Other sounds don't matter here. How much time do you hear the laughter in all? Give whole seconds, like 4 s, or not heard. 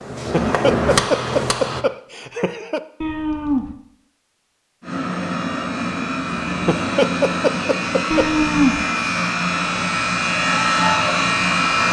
4 s.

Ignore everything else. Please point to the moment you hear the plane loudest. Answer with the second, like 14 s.
11 s.